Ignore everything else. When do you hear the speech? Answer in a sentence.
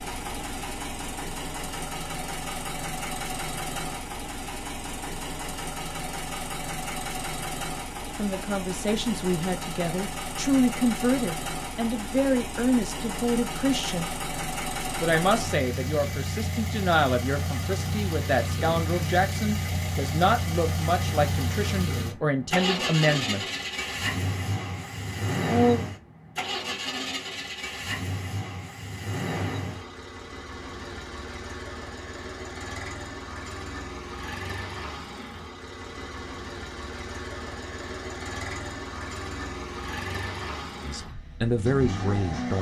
You can hear the speech from 8.2 to 14.1 s, from 14.9 to 23.4 s, from 25.4 to 25.9 s and from 40.8 to 42.5 s.